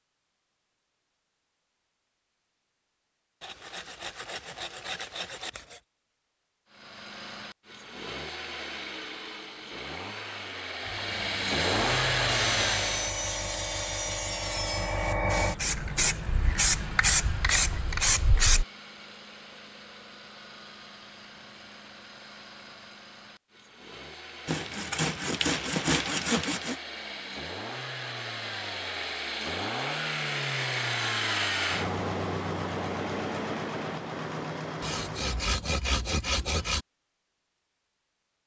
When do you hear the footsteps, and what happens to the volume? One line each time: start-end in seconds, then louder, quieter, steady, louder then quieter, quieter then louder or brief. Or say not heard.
not heard.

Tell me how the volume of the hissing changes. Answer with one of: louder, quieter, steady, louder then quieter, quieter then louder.
louder.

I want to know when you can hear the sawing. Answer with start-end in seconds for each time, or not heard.
3.4-5.8, 12.2-15.0, 24.4-26.8, 34.8-36.9.